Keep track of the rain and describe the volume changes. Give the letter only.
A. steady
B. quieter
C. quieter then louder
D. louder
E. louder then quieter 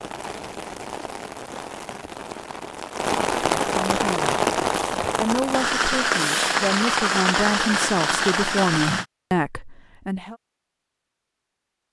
D.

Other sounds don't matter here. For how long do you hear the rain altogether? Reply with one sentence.
The rain can be heard for 9 seconds in total.